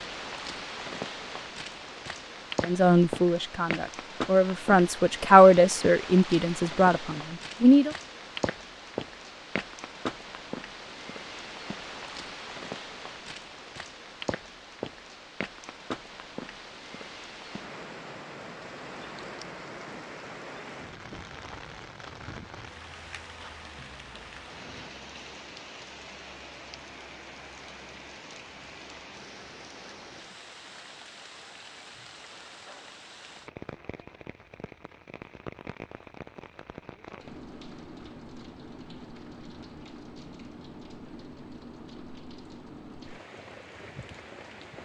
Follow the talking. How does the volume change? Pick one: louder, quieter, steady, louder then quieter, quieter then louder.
louder then quieter.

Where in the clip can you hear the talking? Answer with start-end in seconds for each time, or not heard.
2.6-7.9.